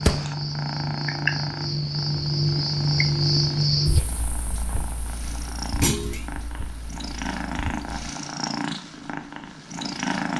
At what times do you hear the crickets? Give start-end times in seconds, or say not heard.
0.0-7.9.